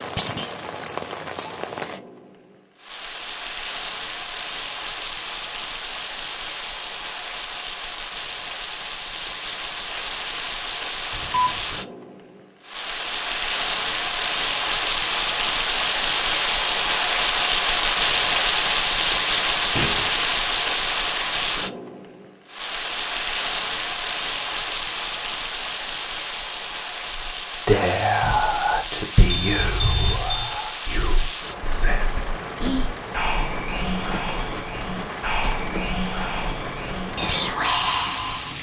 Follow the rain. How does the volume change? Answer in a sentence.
The loudness of the rain goes up, then down.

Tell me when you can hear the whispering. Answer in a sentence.
The whispering can be heard from 27.1 to 38.5 s.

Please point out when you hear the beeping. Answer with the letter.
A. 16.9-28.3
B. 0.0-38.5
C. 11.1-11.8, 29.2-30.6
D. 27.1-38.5
C.